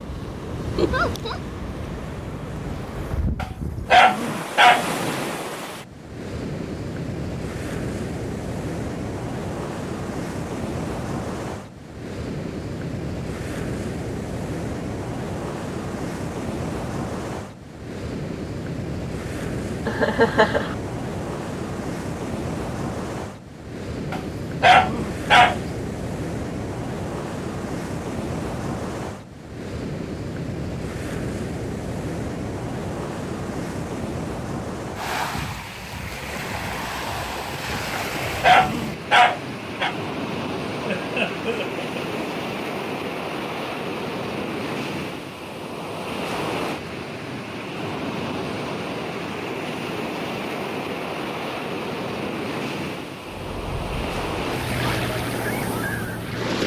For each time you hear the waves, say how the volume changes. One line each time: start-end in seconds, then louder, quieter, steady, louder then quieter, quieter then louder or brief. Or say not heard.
0.0-56.6 steady.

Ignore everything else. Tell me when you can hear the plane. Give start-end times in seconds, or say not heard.
53.3-56.6.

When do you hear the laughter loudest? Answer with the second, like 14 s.
20 s.